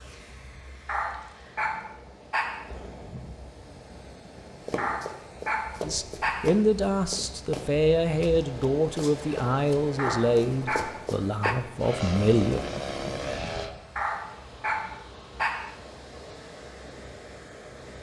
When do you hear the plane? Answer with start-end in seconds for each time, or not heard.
11.8-13.8.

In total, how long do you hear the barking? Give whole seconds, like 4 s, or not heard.
7 s.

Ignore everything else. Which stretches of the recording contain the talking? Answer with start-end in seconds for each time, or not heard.
5.8-12.6.